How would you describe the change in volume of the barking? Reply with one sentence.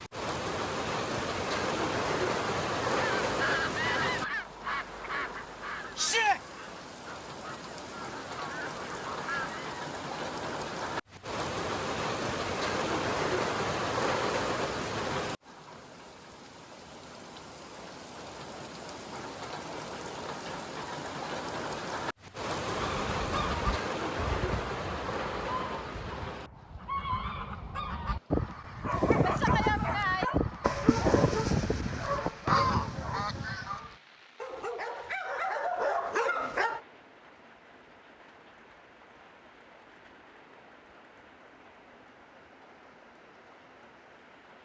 The volume of the barking goes down, then up.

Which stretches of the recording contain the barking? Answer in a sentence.
You can hear the barking from 28.8 to 36.8 s.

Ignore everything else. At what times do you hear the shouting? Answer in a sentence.
The shouting can be heard from 6.0 to 6.4 s.